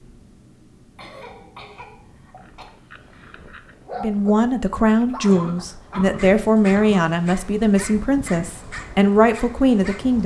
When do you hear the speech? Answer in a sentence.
You can hear the speech from 4.0 to 10.2 s.